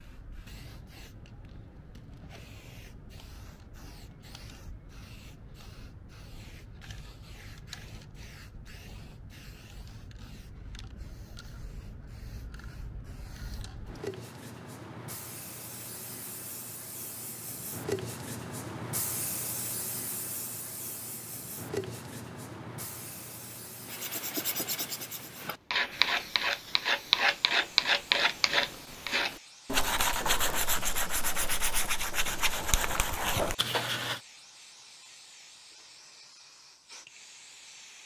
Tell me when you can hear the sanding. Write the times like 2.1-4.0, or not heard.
23.9-34.2.